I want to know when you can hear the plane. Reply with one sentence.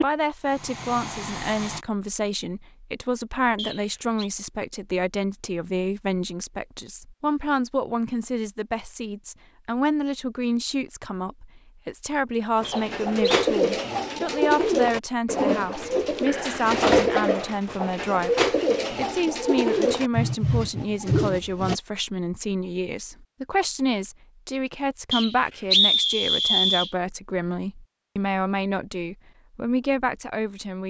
The plane can be heard from 0.0 to 1.9 s.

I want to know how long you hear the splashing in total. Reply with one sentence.
You can't hear the splashing here.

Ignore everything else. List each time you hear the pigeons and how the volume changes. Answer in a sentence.
The pigeons can be heard from 12.6 to 21.8 s, at a steady volume.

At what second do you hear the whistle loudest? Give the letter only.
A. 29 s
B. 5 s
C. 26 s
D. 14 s
C.